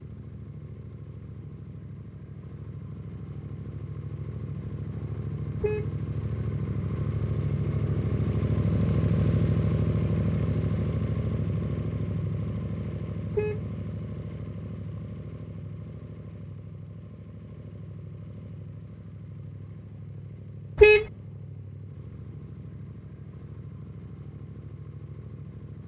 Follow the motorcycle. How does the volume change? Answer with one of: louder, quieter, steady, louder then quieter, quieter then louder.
louder then quieter.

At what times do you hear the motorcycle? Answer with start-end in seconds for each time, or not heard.
0.0-25.8.